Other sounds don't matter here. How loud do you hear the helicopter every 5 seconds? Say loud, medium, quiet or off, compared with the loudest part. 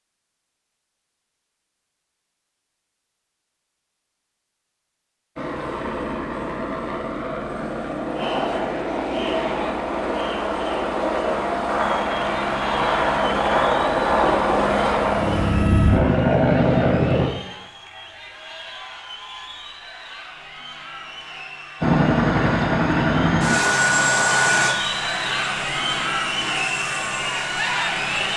off, medium, loud, loud, loud, quiet.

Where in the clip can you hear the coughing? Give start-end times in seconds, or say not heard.
not heard.